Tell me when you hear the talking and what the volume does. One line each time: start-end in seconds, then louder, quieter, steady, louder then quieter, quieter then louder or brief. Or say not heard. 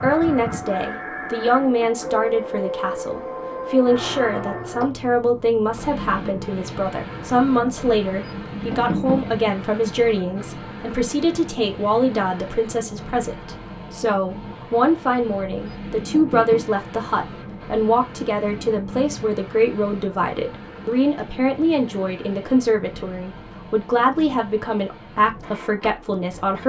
0.0-26.6 steady.